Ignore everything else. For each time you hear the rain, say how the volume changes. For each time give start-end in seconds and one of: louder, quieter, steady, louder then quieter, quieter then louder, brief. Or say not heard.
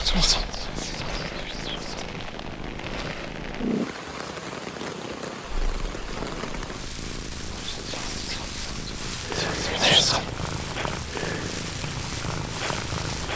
0.0-13.3 steady.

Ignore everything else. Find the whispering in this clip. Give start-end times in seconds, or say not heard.
0.0-2.1, 7.5-10.3.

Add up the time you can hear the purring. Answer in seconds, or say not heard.
13 s.